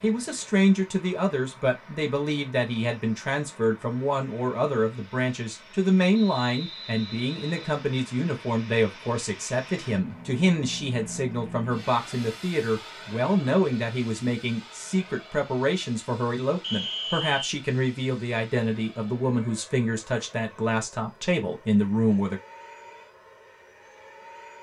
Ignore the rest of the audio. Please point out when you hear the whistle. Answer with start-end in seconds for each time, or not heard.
6.1-7.8, 16.6-17.5.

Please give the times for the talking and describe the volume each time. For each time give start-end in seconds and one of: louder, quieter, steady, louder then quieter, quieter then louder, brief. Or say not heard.
0.0-22.4 steady.